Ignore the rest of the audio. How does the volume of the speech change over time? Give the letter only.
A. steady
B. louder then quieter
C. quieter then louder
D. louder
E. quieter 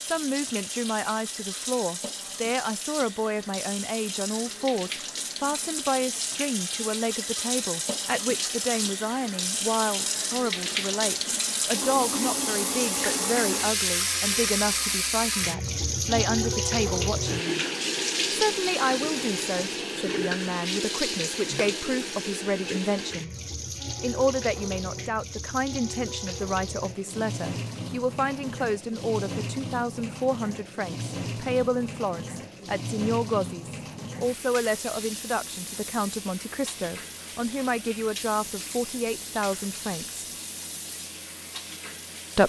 A.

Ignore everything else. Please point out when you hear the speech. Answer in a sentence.
You can hear the speech from 0.0 to 17.6 s, from 18.3 to 23.3 s and from 24.0 to 40.2 s.